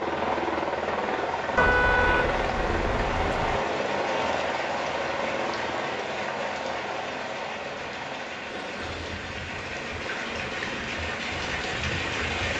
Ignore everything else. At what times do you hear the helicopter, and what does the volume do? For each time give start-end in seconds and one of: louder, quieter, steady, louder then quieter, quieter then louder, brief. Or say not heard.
0.0-12.5 quieter.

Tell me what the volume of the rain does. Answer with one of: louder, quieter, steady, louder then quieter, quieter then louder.
louder.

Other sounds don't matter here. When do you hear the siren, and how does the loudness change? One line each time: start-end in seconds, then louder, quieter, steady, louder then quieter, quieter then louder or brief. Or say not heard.
not heard.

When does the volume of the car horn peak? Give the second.
2 s.